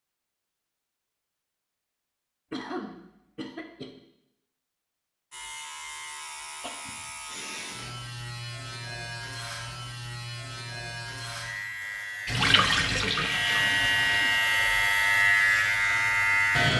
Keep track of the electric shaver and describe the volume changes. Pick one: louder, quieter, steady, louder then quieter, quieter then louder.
louder.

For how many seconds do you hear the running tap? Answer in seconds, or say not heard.
2 s.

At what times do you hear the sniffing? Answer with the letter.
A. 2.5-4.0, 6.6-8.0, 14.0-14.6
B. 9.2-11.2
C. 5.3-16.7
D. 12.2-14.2
A.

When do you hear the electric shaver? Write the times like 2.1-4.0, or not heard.
5.3-16.7.